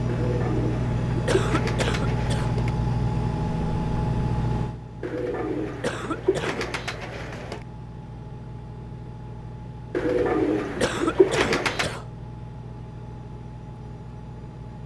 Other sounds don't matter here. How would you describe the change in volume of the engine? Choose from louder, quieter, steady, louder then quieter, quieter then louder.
quieter.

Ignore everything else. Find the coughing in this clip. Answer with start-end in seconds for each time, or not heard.
1.2-2.5, 5.8-6.7, 10.8-12.1.